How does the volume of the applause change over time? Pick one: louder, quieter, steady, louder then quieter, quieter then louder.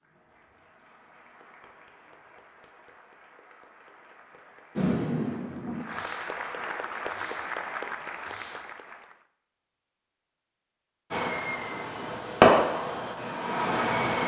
louder.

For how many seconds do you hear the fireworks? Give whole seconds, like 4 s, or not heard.
7 s.